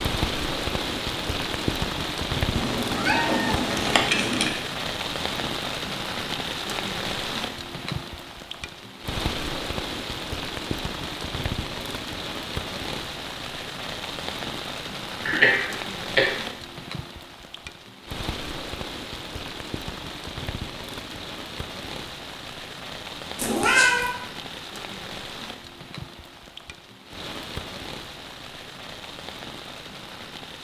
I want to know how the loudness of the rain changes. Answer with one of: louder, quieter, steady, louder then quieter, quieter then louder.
quieter.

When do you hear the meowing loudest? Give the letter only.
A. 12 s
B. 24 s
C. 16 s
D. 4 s
B.